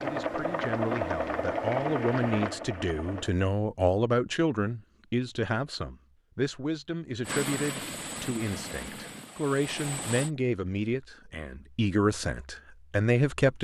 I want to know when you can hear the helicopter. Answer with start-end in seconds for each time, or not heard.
0.0-3.3, 7.2-10.3.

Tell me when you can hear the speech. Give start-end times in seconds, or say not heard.
0.0-13.5.